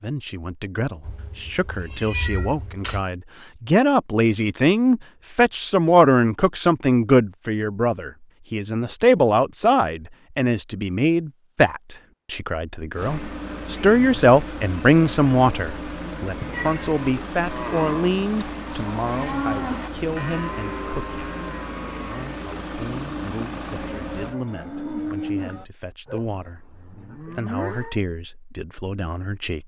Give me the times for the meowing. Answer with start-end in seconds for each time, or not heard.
1.1-3.0, 16.4-17.0.